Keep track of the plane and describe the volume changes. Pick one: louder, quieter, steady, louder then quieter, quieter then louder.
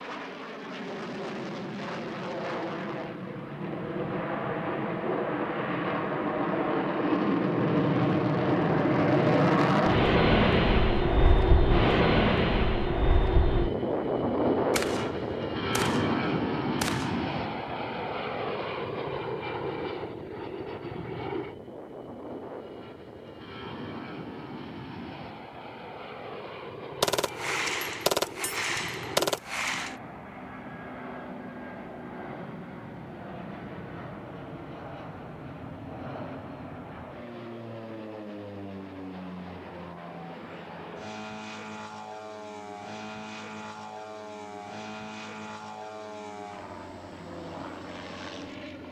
quieter.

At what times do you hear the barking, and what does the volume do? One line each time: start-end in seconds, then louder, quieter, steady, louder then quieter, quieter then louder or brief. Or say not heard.
not heard.